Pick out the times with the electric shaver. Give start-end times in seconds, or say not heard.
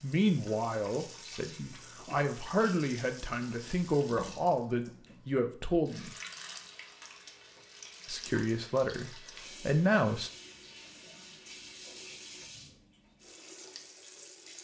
not heard.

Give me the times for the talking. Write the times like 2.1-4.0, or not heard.
0.0-6.2, 8.1-10.3.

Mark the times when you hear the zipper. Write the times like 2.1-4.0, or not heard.
not heard.